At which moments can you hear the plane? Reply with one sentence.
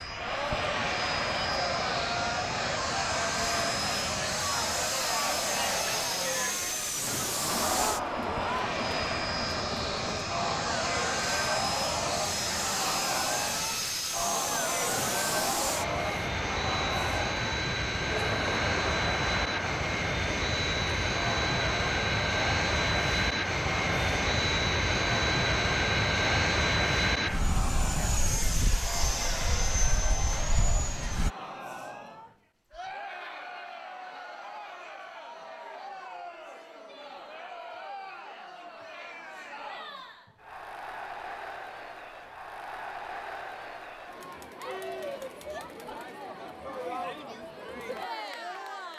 The plane can be heard from 0.0 to 31.4 s.